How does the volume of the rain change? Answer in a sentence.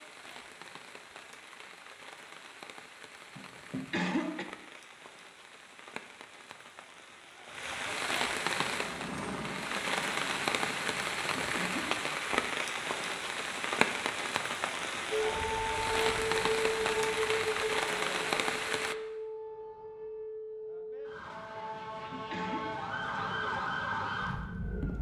The loudness of the rain goes up.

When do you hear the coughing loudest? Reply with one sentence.
The volume of the coughing peaks at 4 seconds.